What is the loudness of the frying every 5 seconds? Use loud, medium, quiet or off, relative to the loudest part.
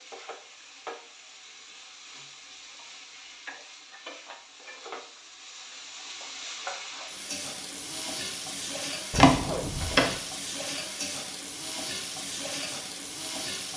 medium, loud, loud.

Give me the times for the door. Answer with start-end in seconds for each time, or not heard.
9.1-10.2.